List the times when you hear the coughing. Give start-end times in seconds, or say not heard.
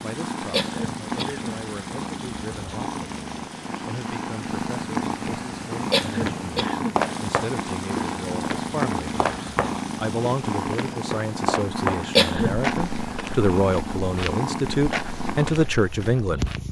0.5-1.6, 5.9-7.0, 12.2-12.6.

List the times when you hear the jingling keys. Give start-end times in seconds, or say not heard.
not heard.